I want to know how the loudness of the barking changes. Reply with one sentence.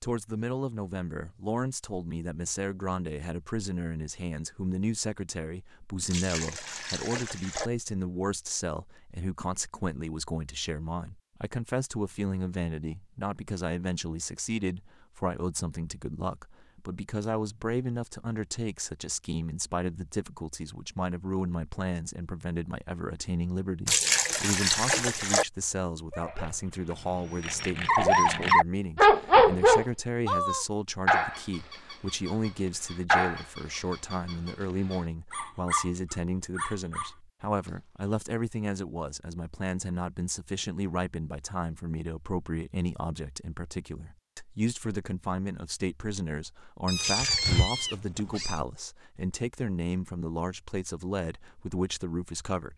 The loudness of the barking goes up, then down.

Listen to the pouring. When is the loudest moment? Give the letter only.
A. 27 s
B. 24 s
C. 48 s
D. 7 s
B.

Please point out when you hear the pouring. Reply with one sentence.
The pouring can be heard from 6.1 to 7.7 s, from 23.9 to 25.4 s and from 47.0 to 47.6 s.